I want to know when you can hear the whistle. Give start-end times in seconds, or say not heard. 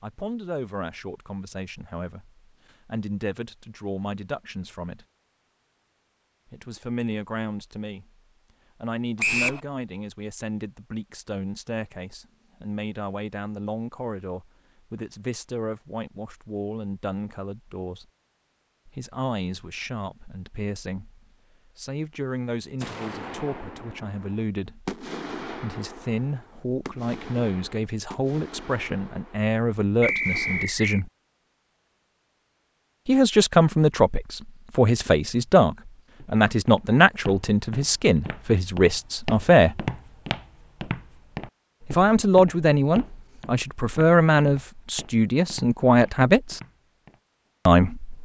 9.2-9.6, 30.0-31.0.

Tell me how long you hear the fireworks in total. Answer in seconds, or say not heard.
8 s.